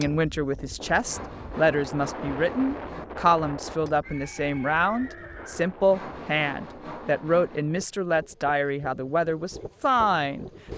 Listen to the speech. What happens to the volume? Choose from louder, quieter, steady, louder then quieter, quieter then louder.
steady.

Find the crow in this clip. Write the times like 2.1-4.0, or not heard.
not heard.